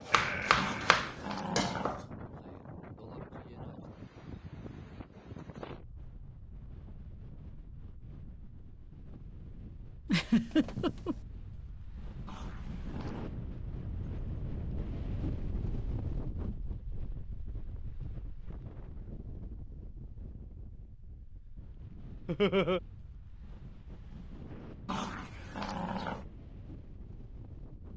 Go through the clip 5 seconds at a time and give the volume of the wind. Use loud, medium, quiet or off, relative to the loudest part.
loud, medium, loud, loud, medium, medium.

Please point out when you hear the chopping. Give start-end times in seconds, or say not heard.
0.1-2.0.